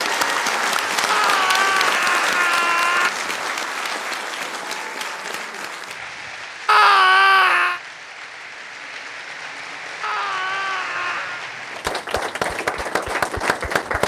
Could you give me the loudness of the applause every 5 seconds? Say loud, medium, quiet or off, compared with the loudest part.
loud, medium, loud.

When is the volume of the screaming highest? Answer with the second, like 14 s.
7 s.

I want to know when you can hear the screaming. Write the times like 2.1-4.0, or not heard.
1.1-3.1, 6.7-7.8, 10.0-11.4.